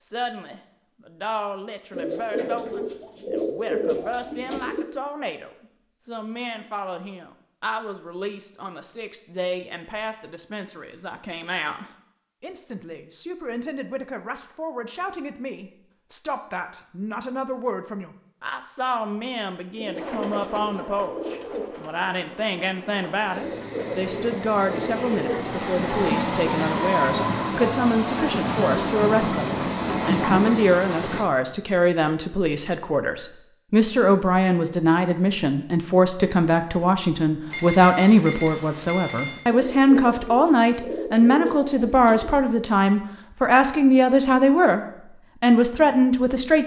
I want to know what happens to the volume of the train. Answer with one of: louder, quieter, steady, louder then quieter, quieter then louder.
louder.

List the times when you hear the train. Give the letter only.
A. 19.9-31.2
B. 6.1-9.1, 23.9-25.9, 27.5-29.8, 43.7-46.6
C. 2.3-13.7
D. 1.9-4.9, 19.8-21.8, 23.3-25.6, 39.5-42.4
A.